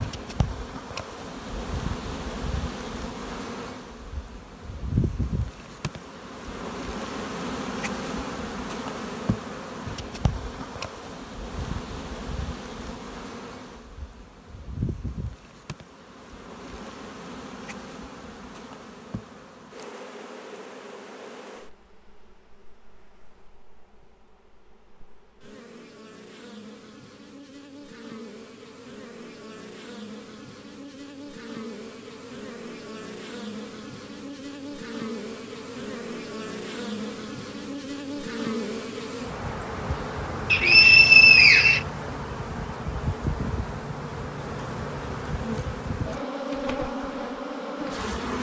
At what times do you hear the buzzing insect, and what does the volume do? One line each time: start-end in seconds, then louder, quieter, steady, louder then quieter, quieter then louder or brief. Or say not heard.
0.0-48.3 quieter then louder.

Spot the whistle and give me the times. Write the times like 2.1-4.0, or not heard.
40.5-41.8.